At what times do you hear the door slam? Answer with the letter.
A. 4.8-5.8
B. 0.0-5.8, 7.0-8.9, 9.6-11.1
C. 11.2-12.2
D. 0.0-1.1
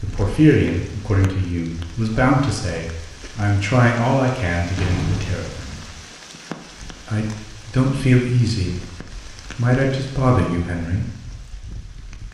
A.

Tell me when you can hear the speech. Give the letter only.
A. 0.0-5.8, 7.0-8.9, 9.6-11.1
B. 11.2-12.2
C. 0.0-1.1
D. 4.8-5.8
A.